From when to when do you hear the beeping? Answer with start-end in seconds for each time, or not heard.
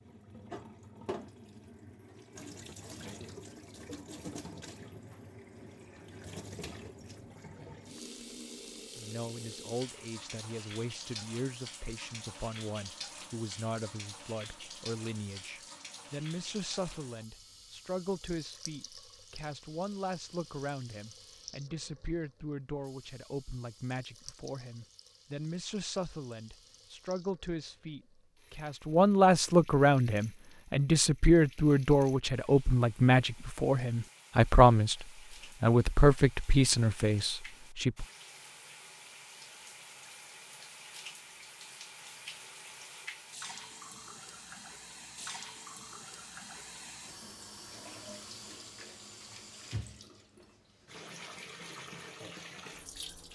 not heard.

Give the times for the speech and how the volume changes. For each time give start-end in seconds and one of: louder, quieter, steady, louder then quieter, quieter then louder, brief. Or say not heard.
8.9-38.0 louder.